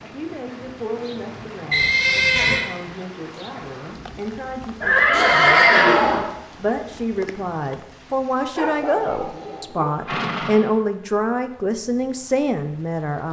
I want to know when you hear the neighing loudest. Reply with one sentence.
The loudest moment of the neighing is at 6 seconds.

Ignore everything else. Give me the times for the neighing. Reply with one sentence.
The neighing can be heard from 1.7 to 2.6 s, from 4.8 to 6.3 s and from 10.0 to 10.7 s.